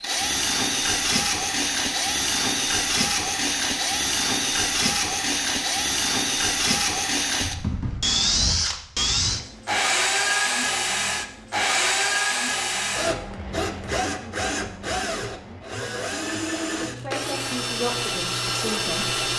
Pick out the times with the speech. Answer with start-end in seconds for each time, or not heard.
16.7-19.1.